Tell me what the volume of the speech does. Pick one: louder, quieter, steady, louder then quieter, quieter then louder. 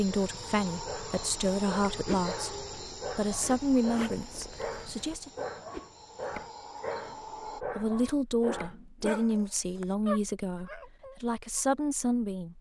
steady.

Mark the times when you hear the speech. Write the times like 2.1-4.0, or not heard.
0.0-5.5, 7.5-12.5.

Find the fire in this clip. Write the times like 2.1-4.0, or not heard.
not heard.